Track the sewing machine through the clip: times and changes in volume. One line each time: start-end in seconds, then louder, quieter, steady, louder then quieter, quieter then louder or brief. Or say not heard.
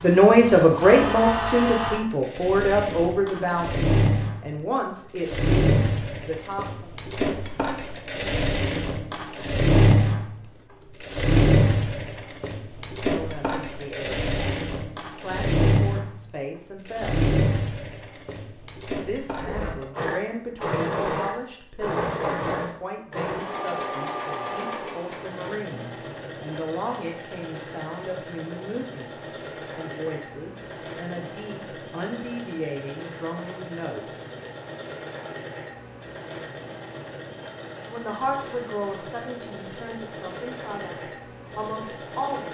0.0-42.5 quieter.